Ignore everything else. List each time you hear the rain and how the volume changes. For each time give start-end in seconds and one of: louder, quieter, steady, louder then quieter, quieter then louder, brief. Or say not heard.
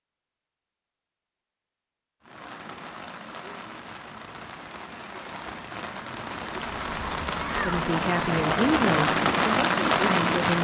2.2-10.5 louder.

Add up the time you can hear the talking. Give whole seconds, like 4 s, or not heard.
3 s.